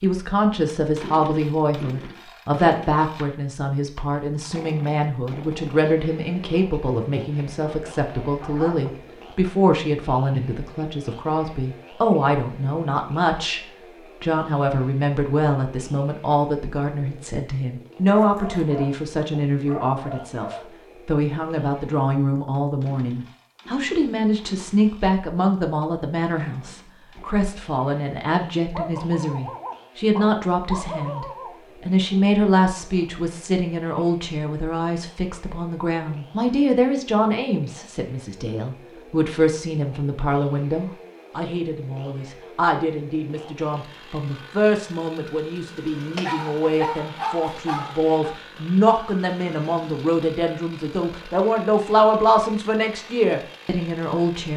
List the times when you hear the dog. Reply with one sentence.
The dog can be heard from 7.7 to 9.1 s, from 18.1 to 20.8 s, from 28.8 to 31.6 s and from 46.1 to 48.4 s.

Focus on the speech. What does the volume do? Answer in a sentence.
The volume of the speech stays about the same.